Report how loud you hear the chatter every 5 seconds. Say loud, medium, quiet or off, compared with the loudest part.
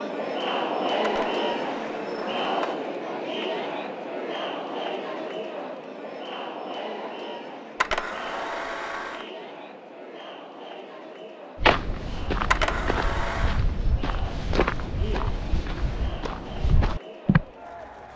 loud, medium, quiet, quiet.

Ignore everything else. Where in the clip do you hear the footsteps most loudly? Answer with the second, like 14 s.
12 s.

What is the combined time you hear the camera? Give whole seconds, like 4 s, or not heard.
4 s.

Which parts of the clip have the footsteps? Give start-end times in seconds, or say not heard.
11.6-17.4.